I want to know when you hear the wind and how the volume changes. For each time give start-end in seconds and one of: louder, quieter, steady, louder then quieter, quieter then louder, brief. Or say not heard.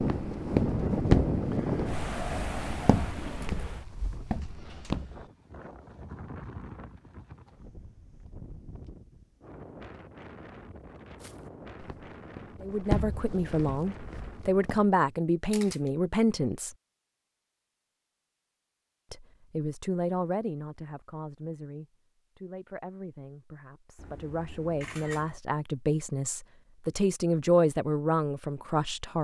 0.0-14.8 quieter.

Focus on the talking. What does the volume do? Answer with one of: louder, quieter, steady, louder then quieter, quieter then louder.
quieter then louder.